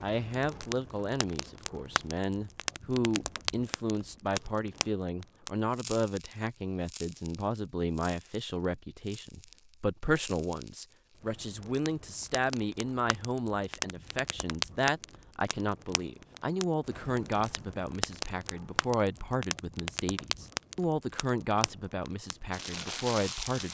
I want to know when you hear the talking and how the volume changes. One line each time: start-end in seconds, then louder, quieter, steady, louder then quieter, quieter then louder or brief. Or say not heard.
0.0-23.6 steady.